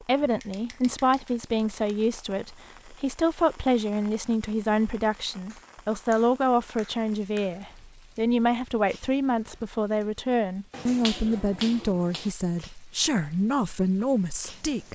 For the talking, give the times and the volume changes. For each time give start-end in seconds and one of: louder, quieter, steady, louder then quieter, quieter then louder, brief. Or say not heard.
0.1-14.8 steady.